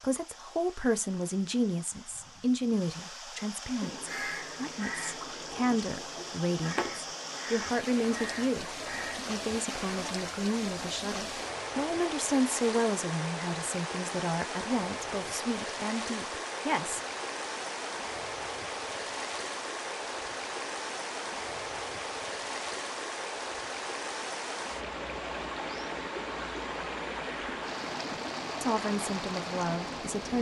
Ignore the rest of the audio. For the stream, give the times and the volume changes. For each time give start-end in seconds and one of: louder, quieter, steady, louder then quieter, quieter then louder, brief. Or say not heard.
0.0-30.3 louder.